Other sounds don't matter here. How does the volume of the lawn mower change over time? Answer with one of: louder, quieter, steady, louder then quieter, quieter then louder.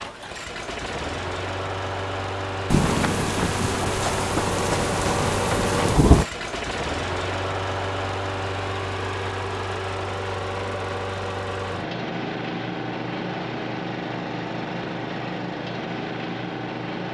steady.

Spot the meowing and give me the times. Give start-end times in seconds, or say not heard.
not heard.